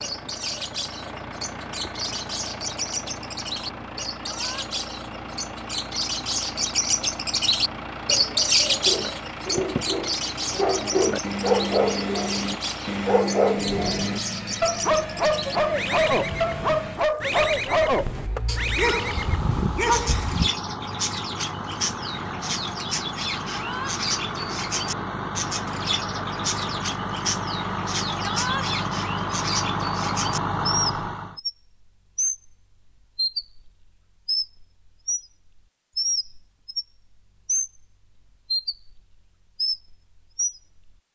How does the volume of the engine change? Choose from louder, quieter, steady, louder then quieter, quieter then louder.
louder.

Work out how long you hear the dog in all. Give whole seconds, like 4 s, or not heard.
12 s.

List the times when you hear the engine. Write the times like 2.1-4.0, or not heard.
0.0-31.4.